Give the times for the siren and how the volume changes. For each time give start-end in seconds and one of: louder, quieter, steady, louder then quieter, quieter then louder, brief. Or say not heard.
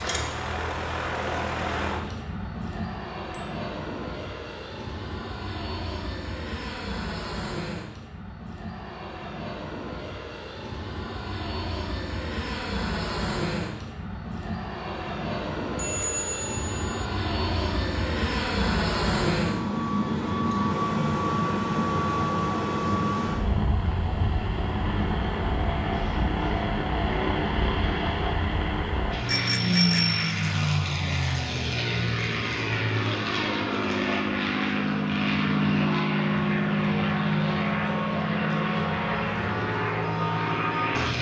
not heard.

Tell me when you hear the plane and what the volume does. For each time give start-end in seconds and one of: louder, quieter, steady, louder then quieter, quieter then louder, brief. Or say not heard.
0.0-41.1 louder.